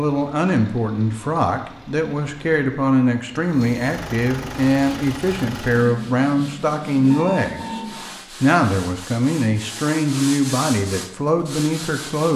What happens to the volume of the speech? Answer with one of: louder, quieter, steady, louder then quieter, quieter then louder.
steady.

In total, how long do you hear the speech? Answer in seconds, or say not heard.
12 s.